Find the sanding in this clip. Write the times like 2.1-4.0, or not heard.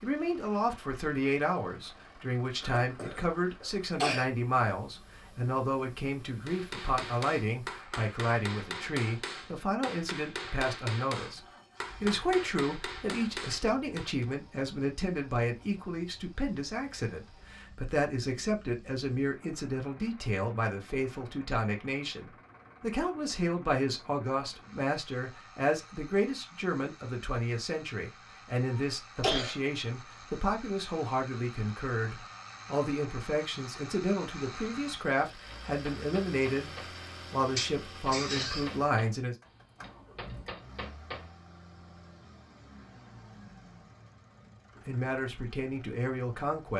not heard.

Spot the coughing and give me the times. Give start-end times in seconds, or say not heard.
2.6-4.2, 28.7-29.6, 37.5-38.7.